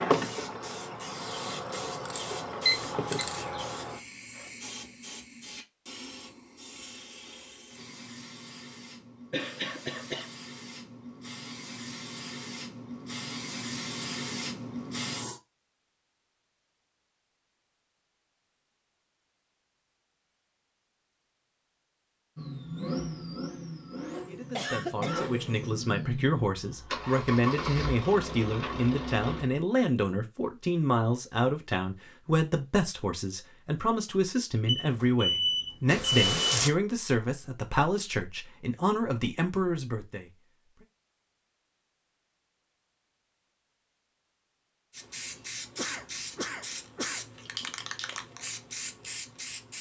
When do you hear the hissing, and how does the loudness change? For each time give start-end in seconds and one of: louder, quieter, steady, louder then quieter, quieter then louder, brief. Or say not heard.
0.0-15.4 quieter then louder
44.9-49.7 steady.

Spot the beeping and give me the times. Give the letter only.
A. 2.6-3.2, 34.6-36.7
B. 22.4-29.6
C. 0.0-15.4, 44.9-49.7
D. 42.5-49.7
A.